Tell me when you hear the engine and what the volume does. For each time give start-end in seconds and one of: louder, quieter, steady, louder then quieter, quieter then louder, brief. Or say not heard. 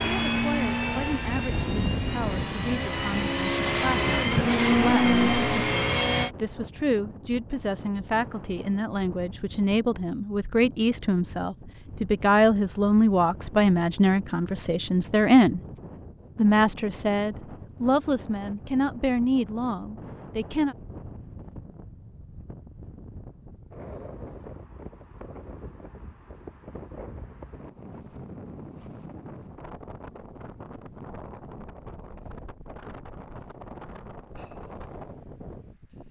0.0-6.3 quieter then louder.